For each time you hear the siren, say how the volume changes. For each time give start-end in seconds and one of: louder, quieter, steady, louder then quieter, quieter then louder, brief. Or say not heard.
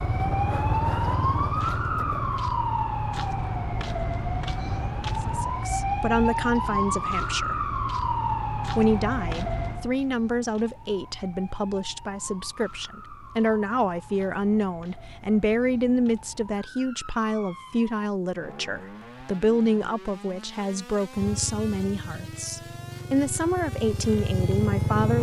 0.0-25.1 quieter.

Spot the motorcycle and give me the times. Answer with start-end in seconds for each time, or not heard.
0.0-5.5, 21.1-25.1.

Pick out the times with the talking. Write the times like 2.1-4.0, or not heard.
5.2-7.7, 8.8-25.1.